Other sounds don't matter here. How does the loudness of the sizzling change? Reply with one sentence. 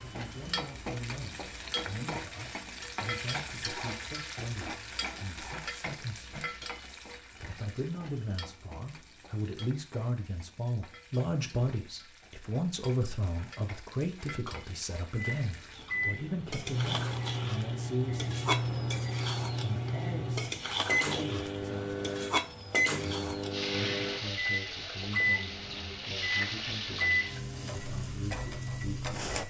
The loudness of the sizzling goes down, then up.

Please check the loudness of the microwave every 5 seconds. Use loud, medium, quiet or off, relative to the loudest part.
off, off, off, loud, loud, loud.